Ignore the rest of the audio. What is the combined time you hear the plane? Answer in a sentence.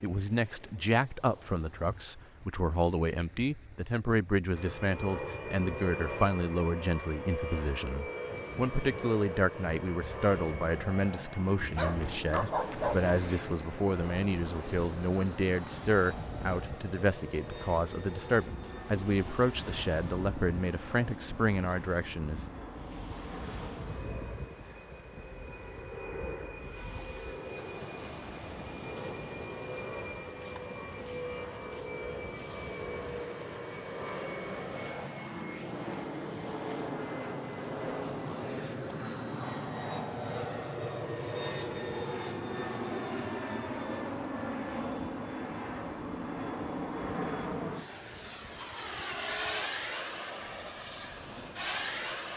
The plane can be heard for 48 seconds in total.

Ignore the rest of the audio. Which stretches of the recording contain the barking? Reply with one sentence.
You can hear the barking from 11.8 to 13.4 s.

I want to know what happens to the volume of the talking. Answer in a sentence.
The loudness of the talking stays about the same.